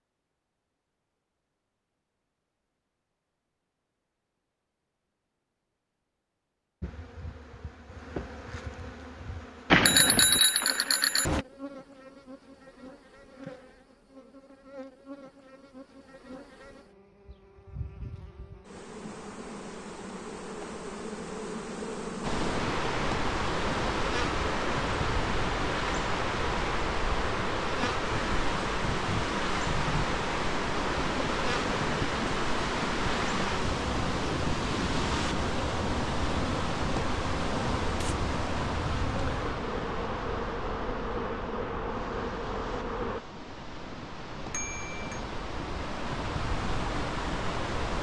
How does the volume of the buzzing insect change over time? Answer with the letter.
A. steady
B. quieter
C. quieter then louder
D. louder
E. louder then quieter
D.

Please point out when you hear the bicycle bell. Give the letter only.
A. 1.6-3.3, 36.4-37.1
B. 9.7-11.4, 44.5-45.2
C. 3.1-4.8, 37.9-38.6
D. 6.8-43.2
B.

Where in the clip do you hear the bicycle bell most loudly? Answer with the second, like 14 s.
10 s.